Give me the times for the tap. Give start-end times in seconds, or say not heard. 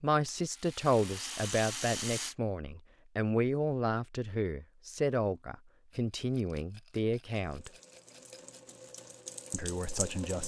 7.4-10.4.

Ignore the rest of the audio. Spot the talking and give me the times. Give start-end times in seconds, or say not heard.
0.0-7.7, 9.5-10.4.